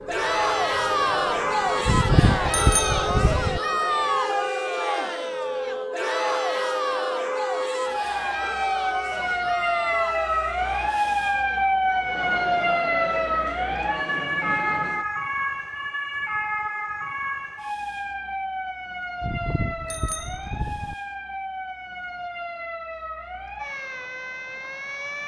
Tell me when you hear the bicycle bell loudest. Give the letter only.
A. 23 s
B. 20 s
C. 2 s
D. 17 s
C.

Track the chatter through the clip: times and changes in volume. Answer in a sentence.
You can hear the chatter from 0.1 to 15.1 s, getting quieter.